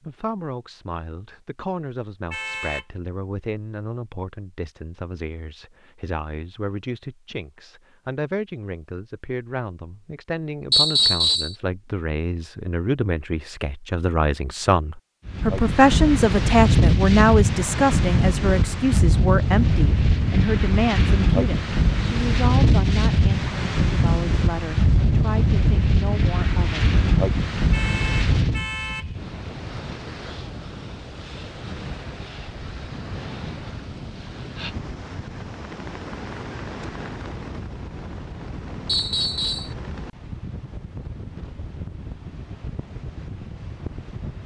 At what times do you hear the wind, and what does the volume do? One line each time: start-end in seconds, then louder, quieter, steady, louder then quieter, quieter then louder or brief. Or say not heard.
15.2-44.4 quieter.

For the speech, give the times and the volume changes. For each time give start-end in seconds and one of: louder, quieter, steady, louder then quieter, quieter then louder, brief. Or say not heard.
0.0-26.9 louder then quieter.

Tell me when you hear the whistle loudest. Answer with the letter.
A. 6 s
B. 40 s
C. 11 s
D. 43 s
C.